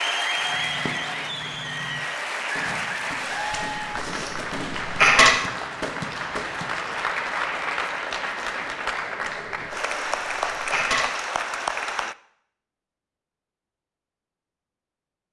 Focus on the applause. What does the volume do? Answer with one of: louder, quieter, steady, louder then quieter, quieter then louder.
steady.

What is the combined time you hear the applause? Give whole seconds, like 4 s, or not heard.
12 s.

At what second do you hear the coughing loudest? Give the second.
5 s.